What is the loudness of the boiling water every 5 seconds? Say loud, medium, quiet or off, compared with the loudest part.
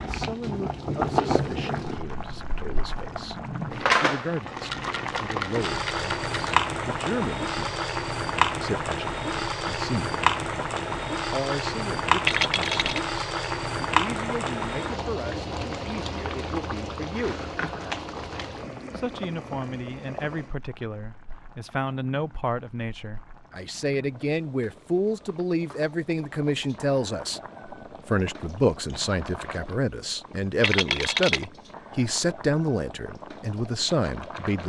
loud, loud, loud, medium, quiet, quiet, quiet.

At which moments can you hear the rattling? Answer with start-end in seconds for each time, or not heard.
4.5-6.5, 12.2-13.0, 30.6-31.4.